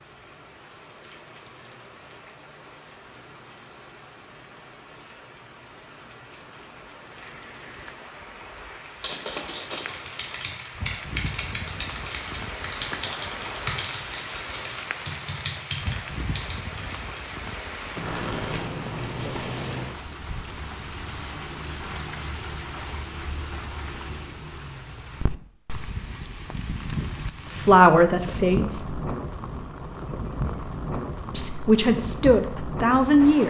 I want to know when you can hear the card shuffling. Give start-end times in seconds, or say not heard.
9.0-10.4, 18.0-19.8.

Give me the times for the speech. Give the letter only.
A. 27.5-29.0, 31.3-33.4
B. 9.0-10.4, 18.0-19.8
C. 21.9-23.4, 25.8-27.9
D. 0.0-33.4
A.